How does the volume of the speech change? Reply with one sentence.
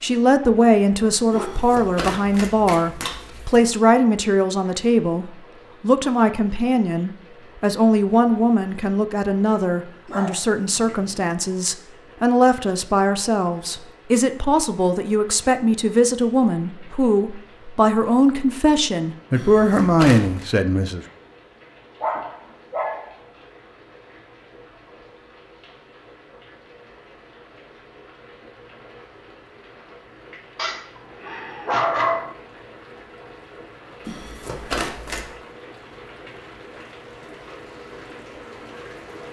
The volume of the speech stays about the same.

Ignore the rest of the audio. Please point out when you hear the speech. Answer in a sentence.
The speech can be heard from 0.0 to 21.1 s.